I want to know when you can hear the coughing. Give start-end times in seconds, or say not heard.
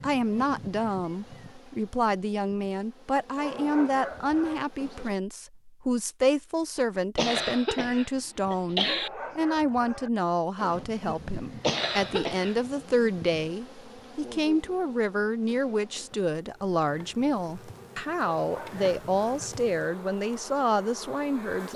7.2-9.1, 11.6-12.6.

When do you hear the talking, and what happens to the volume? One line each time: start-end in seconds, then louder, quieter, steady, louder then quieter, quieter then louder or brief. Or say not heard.
0.0-21.7 steady.